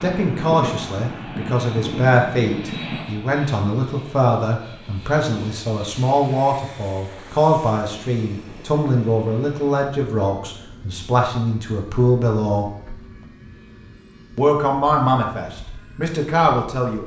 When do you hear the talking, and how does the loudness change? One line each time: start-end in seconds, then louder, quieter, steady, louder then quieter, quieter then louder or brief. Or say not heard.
0.0-12.7 steady
14.3-17.0 brief.